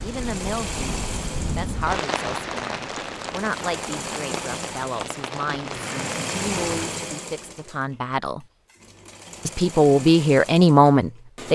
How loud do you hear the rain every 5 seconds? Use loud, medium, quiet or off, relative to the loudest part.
loud, loud, off.